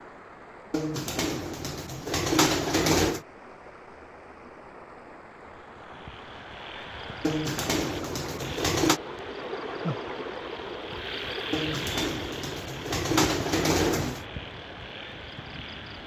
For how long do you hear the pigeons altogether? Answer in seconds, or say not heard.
7 s.